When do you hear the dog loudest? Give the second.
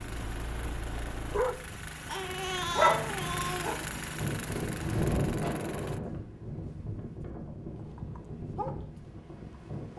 3 s.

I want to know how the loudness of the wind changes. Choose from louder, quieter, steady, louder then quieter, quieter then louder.
louder then quieter.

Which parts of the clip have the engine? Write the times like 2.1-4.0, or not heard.
0.0-6.0.